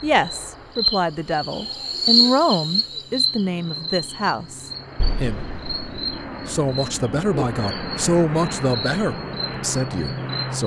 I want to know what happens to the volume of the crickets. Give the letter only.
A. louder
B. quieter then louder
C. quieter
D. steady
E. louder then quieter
C.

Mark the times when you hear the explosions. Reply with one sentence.
The explosions can be heard from 5.0 to 6.2 s.